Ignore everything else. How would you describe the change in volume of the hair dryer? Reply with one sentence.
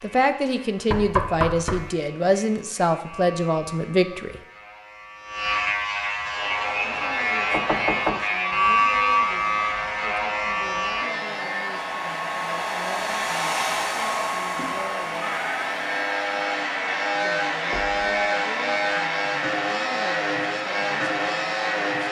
The loudness of the hair dryer goes up, then down.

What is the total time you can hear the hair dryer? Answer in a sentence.
You can hear the hair dryer for 16 seconds altogether.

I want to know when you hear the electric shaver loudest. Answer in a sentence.
The volume of the electric shaver peaks at 9 seconds.